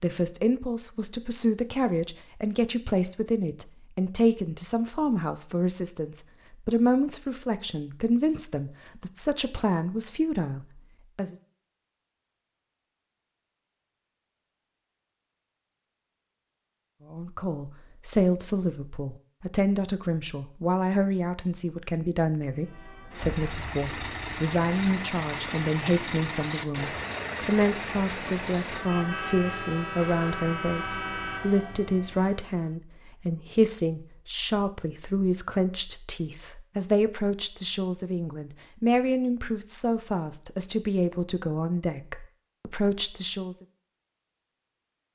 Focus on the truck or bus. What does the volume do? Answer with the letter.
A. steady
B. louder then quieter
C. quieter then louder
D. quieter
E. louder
A.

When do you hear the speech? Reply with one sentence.
The speech can be heard from 0.0 to 11.3 s and from 17.1 to 43.5 s.